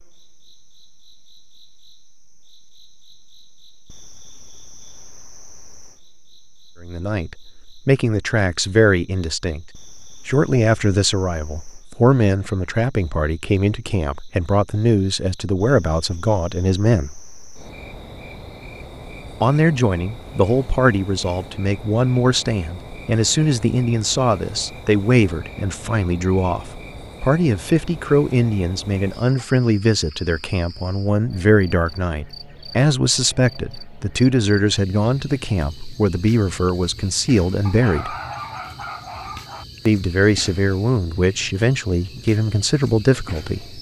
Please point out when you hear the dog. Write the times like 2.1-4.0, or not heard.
37.6-39.6.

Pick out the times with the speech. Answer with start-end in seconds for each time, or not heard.
6.8-9.7, 10.2-17.2, 19.4-38.1, 39.9-43.7.